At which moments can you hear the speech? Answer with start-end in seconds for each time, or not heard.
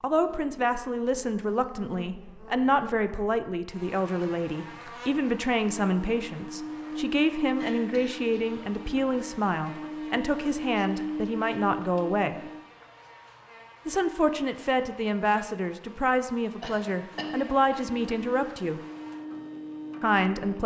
0.0-12.3, 13.8-18.8, 20.0-20.6.